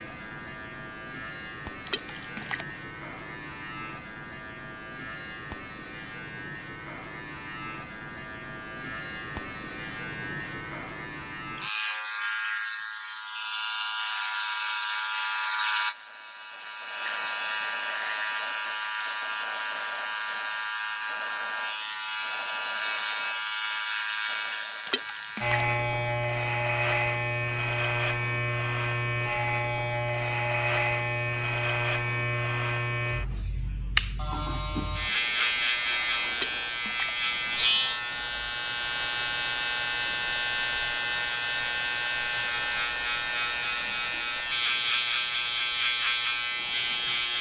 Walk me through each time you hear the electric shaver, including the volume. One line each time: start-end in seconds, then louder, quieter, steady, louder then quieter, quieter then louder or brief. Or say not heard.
0.0-47.3 louder.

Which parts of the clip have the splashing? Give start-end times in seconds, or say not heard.
1.9-2.7, 24.9-25.7, 36.4-37.2.